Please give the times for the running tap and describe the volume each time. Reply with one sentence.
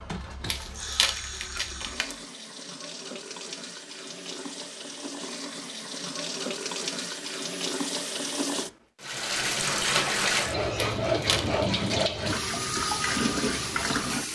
The running tap can be heard from 0.0 to 14.3 s, getting louder.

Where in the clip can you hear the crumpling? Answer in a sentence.
You can hear the crumpling from 0.5 to 2.1 s and from 10.8 to 11.6 s.